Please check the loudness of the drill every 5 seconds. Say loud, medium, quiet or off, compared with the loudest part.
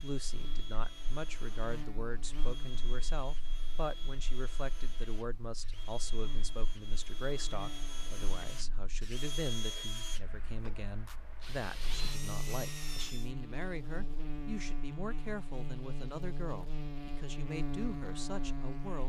medium, loud, loud, off.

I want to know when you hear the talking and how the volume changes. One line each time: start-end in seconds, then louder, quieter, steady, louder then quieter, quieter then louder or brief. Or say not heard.
0.0-19.0 steady.